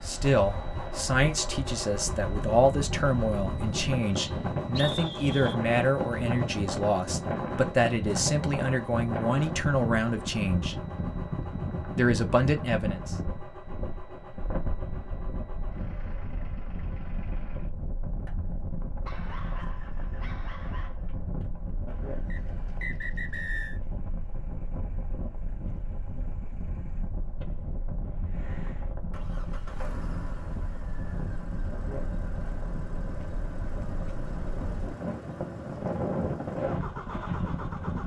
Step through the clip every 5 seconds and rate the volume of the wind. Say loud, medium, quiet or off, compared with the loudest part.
loud, loud, loud, medium, medium, medium, medium, loud.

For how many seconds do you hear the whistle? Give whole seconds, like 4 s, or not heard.
3 s.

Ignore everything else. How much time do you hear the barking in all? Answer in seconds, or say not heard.
2 s.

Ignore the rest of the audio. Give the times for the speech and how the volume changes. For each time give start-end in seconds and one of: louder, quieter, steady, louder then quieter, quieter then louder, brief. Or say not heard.
0.0-10.8 steady
11.9-13.2 brief.